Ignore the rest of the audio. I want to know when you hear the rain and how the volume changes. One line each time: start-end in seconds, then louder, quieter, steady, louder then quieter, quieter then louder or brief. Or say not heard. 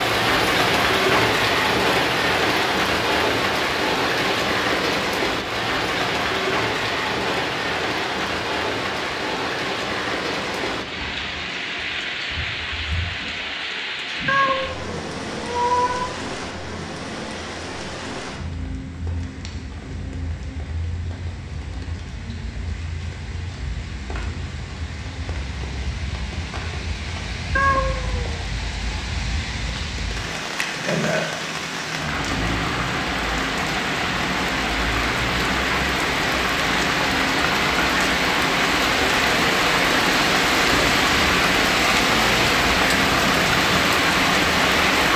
0.0-45.1 quieter then louder.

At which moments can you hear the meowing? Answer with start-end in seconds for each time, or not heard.
14.2-16.1, 27.6-28.4.